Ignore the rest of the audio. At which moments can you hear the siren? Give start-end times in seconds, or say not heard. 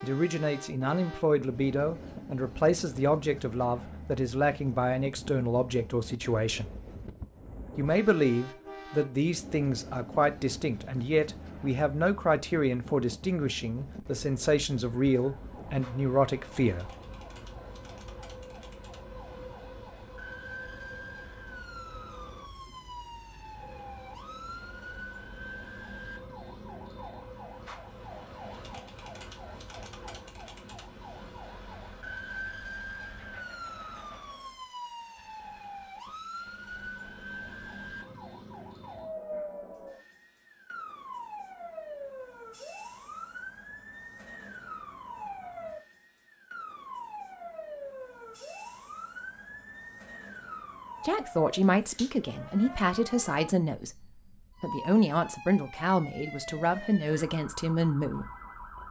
14.9-58.8.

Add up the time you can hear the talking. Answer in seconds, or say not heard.
23 s.